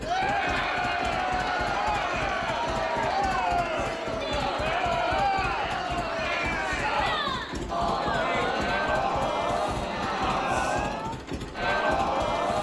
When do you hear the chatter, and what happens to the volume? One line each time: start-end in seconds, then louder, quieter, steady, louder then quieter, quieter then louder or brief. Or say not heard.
0.0-12.5 steady.